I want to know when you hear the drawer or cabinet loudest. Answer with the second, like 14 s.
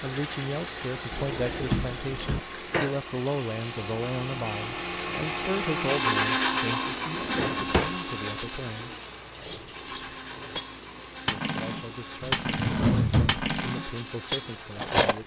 13 s.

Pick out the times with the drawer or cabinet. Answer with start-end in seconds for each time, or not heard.
1.1-2.4, 7.2-8.0, 12.2-13.5.